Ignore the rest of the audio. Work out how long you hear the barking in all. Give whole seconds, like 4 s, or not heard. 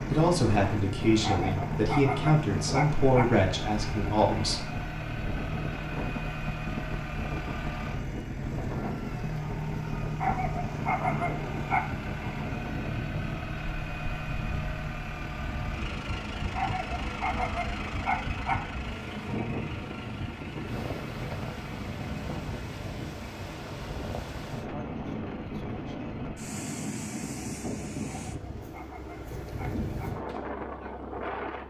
8 s.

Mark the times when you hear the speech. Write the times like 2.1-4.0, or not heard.
0.1-4.8.